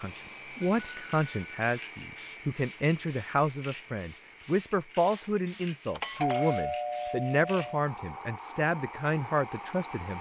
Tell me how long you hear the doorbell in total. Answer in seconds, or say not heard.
3 s.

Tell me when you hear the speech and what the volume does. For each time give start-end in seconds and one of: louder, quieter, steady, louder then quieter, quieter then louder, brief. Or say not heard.
0.0-10.1 steady.